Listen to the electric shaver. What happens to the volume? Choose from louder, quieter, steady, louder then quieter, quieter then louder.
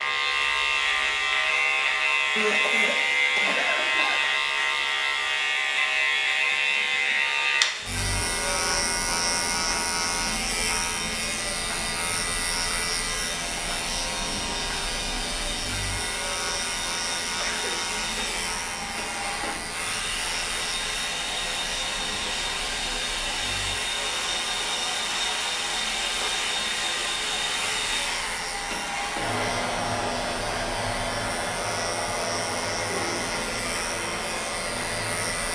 quieter.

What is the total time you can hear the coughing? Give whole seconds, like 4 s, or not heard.
4 s.